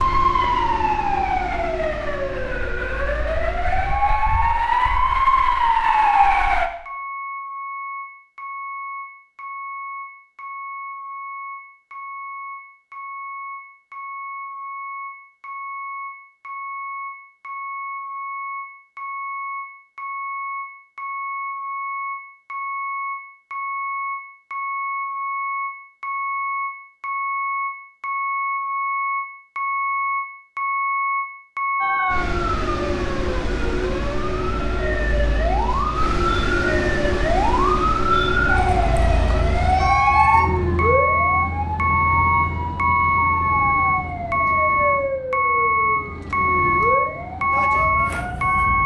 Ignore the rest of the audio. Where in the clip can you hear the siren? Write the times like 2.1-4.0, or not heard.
0.0-6.7, 31.8-48.8.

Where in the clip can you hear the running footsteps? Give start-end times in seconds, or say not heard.
not heard.